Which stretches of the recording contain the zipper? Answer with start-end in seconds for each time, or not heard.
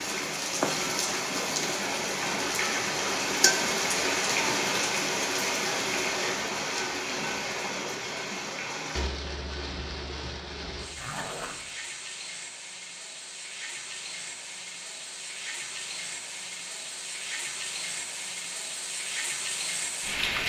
10.9-11.8.